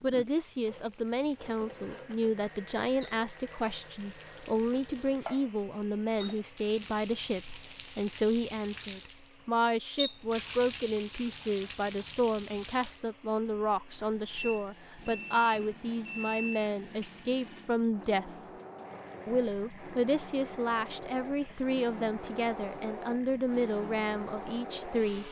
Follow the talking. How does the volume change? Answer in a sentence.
The loudness of the talking stays about the same.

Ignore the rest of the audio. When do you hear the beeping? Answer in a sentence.
The beeping can be heard from 14.3 to 16.7 s.